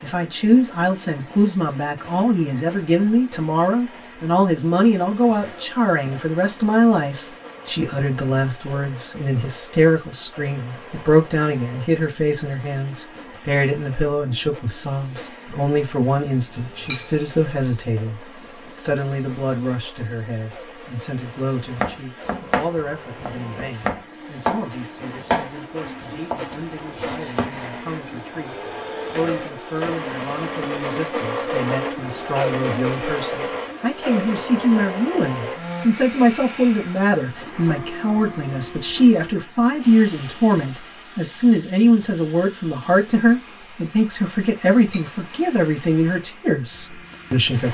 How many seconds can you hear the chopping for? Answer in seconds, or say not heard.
7 s.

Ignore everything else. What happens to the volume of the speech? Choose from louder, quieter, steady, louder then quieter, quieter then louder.
quieter then louder.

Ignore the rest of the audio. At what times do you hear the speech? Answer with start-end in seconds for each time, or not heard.
0.0-47.6.